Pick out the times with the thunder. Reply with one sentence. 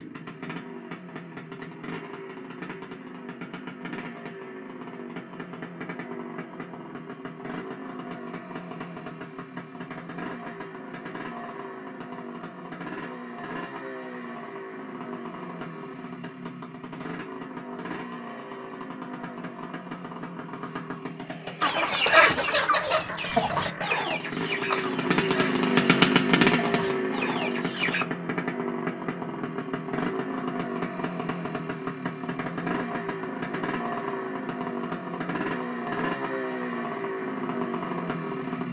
The thunder can't be heard in this clip.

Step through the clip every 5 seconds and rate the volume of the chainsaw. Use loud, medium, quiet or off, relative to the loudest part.
quiet, quiet, quiet, quiet, medium, loud, medium, medium.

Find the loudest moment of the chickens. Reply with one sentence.
The loudest moment of the chickens is at 22 seconds.